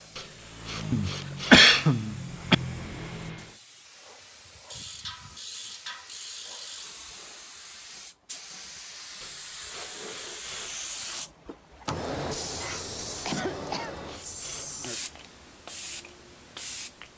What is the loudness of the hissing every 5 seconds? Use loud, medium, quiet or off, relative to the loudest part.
quiet, medium, loud, medium.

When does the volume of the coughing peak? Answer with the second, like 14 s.
2 s.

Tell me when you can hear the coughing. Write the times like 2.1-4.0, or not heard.
0.9-2.5, 12.6-13.9.